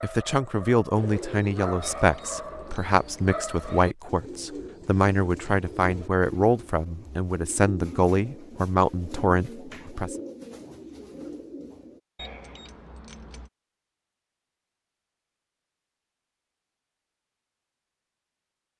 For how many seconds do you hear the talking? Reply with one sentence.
You can hear the talking for 10 seconds altogether.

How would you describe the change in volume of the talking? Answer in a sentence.
The volume of the talking stays about the same.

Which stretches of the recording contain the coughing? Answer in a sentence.
You can't hear the coughing here.